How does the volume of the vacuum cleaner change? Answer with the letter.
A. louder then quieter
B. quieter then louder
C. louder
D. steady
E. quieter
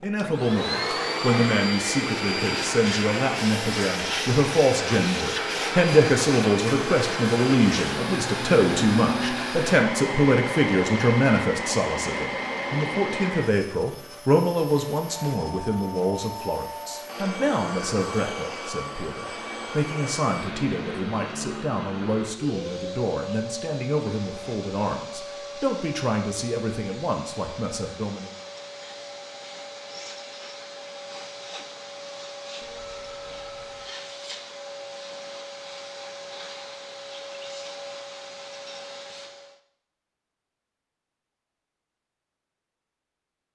E.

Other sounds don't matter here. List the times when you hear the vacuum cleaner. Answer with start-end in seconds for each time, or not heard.
0.0-39.6.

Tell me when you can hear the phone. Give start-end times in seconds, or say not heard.
15.3-17.1, 32.6-33.9.